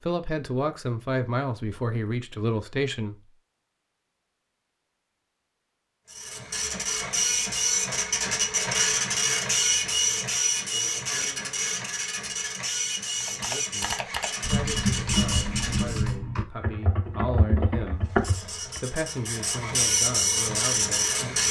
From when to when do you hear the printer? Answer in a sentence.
The printer can be heard from 6.0 to 16.1 s and from 18.0 to 21.4 s.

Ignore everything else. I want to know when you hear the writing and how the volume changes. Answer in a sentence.
You can't hear the writing here.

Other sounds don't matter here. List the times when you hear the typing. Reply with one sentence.
You can hear the typing from 13.2 to 18.8 s.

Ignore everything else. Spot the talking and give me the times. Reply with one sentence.
You can hear the talking from 0.0 to 3.1 s and from 13.2 to 21.4 s.